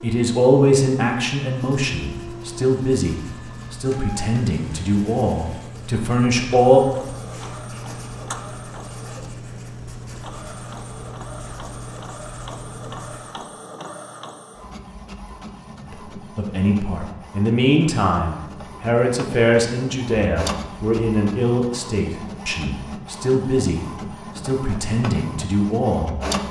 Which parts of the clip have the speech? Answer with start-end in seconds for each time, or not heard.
0.0-6.8, 15.8-26.4.